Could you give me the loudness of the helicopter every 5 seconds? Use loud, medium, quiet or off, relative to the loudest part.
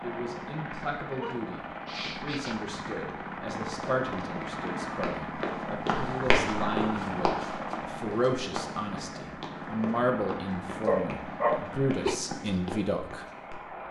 loud, loud, medium.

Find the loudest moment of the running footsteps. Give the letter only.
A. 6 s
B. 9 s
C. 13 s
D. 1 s
A.